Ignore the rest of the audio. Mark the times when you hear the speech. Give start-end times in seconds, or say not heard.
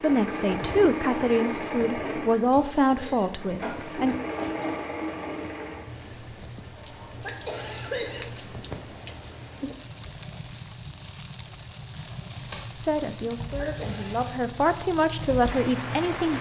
0.0-4.2, 12.8-16.3.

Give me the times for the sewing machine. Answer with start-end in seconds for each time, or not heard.
0.0-16.3.